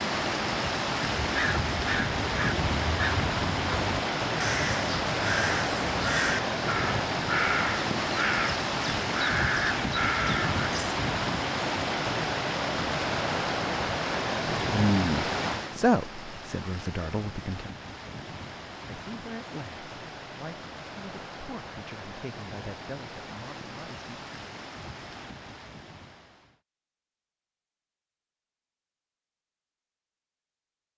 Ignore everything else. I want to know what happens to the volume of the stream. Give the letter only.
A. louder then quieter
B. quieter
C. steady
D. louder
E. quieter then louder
B.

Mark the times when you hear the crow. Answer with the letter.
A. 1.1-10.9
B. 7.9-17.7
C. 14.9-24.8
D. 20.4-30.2
A.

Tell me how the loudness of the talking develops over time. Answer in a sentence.
The loudness of the talking goes down.